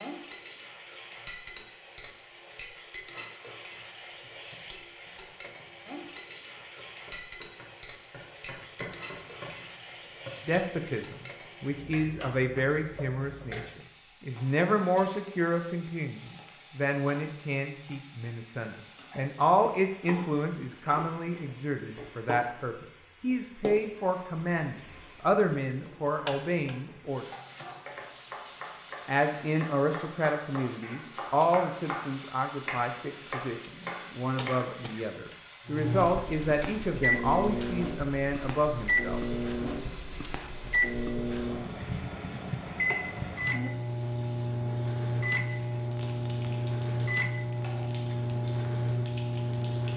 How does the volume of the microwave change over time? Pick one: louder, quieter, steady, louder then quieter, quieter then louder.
steady.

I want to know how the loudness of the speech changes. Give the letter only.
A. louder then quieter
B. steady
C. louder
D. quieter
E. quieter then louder
B.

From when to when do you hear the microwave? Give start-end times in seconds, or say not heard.
35.6-49.9.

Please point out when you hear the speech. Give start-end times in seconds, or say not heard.
10.4-27.2, 29.1-39.7.